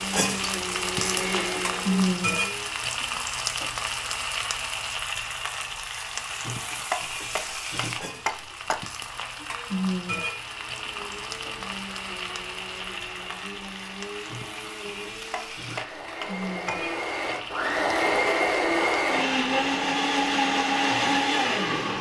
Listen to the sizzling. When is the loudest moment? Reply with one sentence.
The loudest moment of the sizzling is at 2 seconds.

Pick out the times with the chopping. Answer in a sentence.
You can hear the chopping from 6.9 to 8.8 s and from 15.3 to 16.9 s.